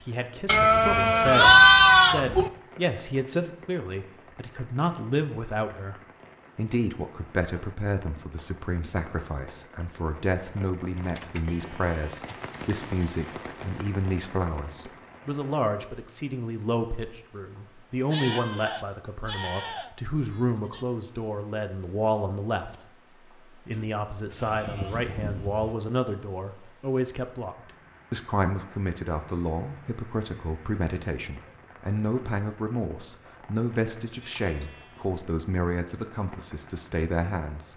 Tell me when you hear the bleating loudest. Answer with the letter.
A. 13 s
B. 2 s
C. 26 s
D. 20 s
B.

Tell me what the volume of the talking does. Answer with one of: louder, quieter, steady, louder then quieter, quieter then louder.
steady.